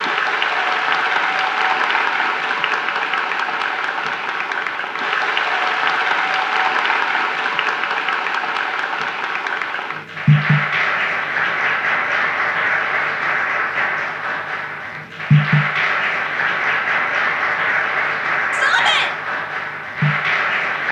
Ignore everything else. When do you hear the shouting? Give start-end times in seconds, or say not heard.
18.5-19.1.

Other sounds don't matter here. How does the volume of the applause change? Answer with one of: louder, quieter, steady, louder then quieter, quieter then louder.
steady.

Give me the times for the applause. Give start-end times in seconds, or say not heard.
0.0-20.8.